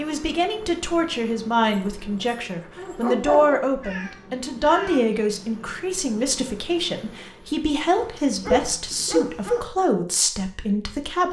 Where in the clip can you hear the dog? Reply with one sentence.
You can hear the dog from 1.7 to 3.6 s and from 8.0 to 9.7 s.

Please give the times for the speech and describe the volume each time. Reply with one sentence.
You can hear the speech from 0.0 to 11.2 s, at a steady volume.